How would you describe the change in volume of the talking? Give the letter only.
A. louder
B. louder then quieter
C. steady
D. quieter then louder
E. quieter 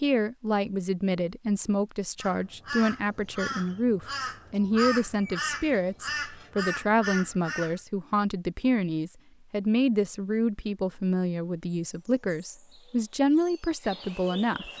C.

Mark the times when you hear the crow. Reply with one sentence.
The crow can be heard from 2.2 to 7.8 s.